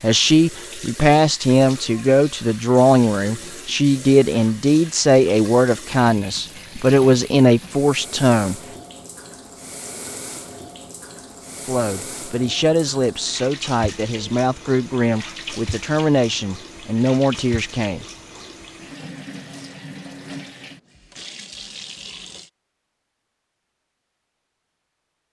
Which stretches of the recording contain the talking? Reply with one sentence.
The talking can be heard from 0.0 to 8.6 s and from 11.7 to 18.1 s.